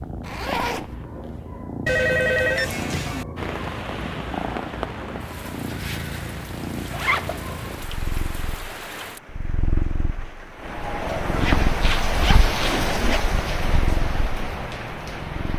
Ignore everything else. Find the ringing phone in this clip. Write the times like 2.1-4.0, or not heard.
1.9-3.2.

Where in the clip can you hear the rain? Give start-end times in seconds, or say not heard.
3.4-15.5.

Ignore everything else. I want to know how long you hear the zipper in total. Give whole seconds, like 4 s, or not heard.
3 s.